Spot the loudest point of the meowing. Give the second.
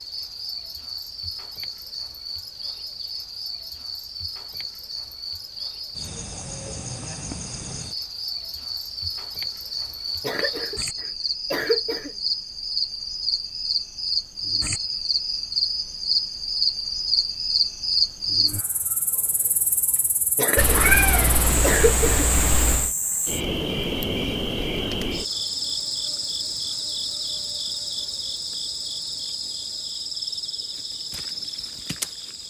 21 s.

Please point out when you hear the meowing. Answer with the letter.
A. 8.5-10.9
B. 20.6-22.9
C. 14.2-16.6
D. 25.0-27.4
B.